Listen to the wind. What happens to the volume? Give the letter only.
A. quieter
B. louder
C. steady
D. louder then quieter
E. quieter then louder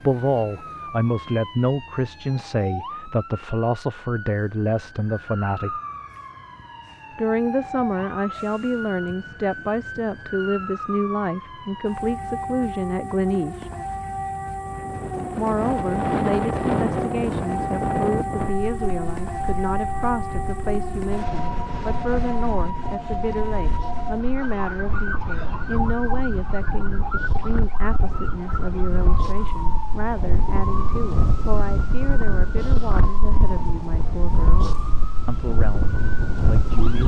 E.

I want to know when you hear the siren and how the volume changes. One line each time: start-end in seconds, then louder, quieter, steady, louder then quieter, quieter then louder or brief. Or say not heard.
0.0-37.0 louder then quieter.